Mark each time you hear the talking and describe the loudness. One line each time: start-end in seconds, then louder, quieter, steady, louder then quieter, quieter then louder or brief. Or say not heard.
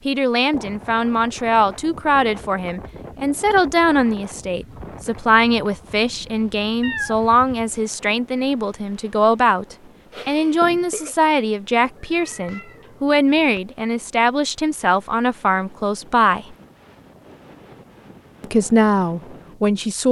0.1-16.6 steady
18.4-20.0 brief.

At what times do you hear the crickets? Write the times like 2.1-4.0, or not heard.
not heard.